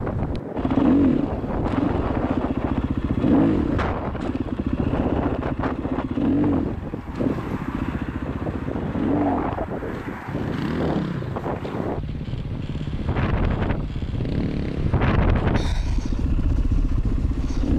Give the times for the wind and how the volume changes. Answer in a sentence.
You can hear the wind from 0.0 to 17.7 s, at a steady volume.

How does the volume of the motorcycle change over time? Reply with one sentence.
The loudness of the motorcycle goes down.